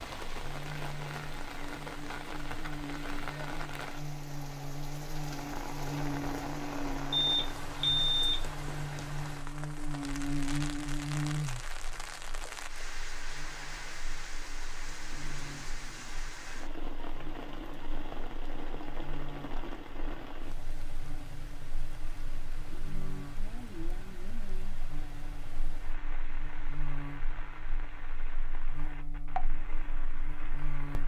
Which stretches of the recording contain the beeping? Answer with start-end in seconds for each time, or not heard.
7.2-8.4.